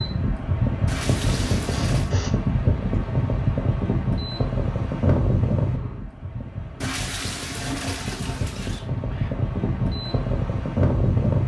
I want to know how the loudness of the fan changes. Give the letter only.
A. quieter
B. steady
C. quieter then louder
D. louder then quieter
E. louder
C.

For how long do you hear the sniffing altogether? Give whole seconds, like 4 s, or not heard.
2 s.